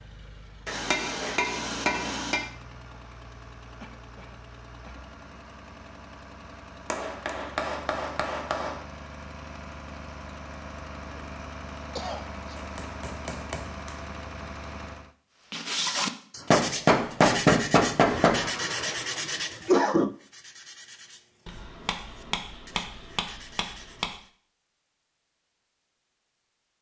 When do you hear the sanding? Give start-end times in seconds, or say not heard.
15.5-24.3.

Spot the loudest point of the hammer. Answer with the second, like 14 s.
17 s.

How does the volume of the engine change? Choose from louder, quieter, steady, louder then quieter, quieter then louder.
louder.